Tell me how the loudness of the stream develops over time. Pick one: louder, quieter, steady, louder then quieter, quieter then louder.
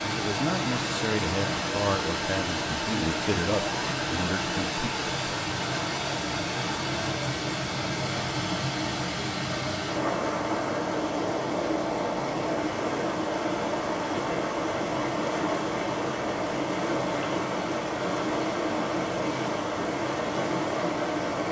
steady.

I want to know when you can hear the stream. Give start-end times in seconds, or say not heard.
0.0-21.4.